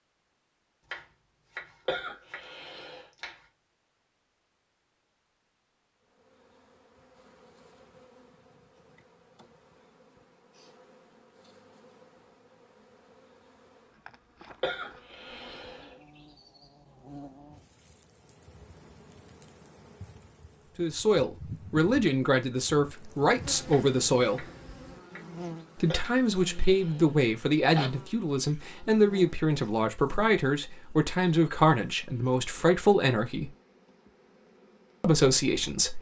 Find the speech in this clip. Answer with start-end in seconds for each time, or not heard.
20.8-24.4, 25.8-33.5, 35.0-35.9.